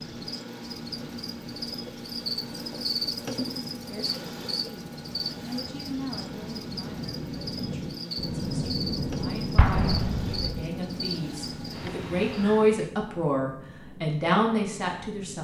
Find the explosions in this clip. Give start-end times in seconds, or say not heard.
9.6-10.6.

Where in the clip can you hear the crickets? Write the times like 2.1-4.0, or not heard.
0.0-12.8.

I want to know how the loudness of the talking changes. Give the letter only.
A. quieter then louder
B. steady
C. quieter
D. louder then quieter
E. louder
A.